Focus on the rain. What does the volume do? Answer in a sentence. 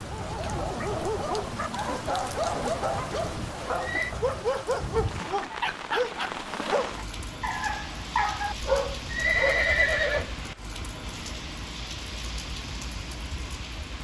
The volume of the rain stays about the same.